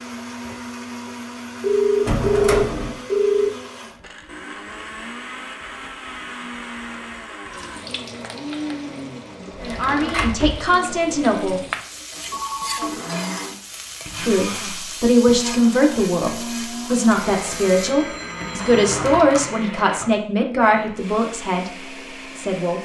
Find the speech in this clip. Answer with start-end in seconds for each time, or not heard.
9.6-11.6, 14.2-21.7, 22.4-22.8.